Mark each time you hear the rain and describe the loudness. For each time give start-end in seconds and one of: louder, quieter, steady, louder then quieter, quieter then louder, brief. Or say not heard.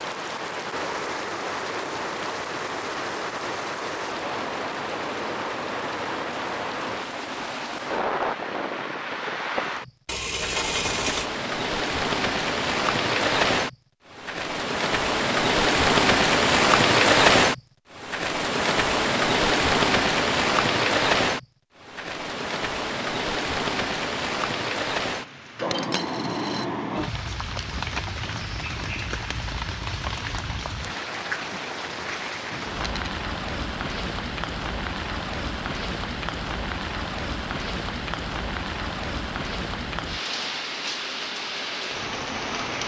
0.0-42.8 louder then quieter.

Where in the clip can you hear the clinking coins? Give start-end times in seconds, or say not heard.
10.1-11.3, 25.7-26.6, 32.8-33.2.